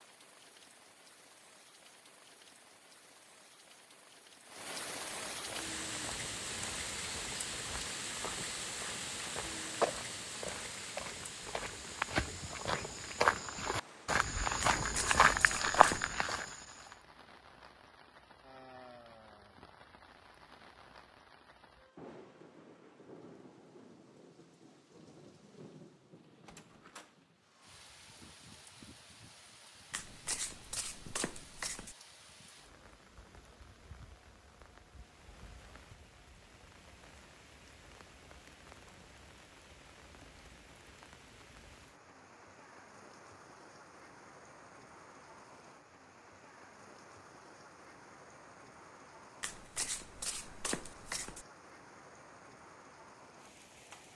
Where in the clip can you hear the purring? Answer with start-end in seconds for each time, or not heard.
not heard.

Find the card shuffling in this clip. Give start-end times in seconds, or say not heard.
14.6-16.1, 29.9-31.9, 49.4-51.5.